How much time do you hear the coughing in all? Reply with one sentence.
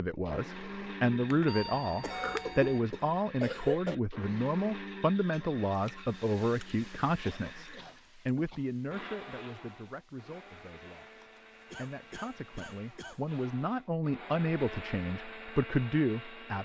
The coughing can be heard for 5 seconds in total.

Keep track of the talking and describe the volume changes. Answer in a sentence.
The volume of the talking goes down, then up.